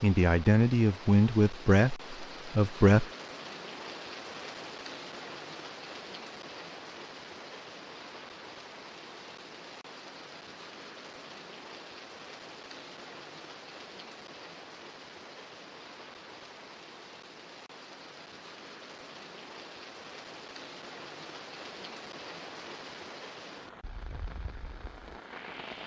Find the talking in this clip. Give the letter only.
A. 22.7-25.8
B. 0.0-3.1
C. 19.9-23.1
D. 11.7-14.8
B.